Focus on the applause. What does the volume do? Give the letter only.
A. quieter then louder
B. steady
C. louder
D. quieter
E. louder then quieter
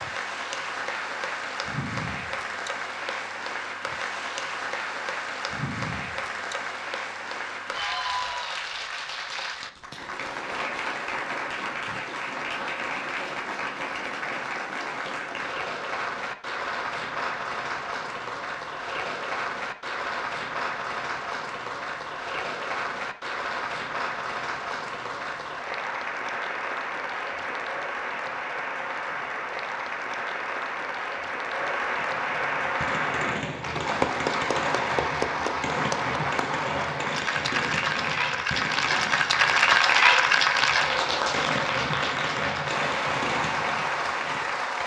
C.